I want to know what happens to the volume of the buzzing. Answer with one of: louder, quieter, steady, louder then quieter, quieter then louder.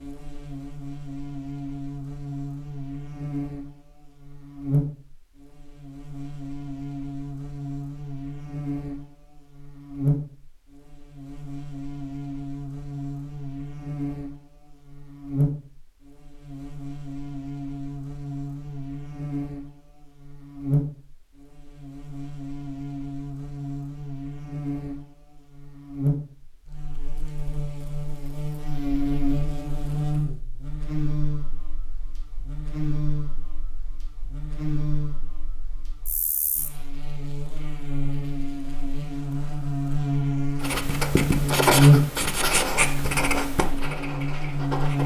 louder.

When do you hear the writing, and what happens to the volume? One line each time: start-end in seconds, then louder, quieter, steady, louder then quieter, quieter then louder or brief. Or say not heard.
40.6-45.0 quieter.